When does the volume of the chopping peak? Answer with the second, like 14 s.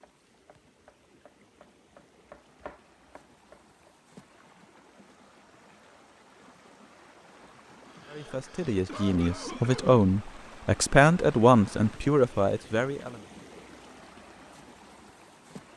3 s.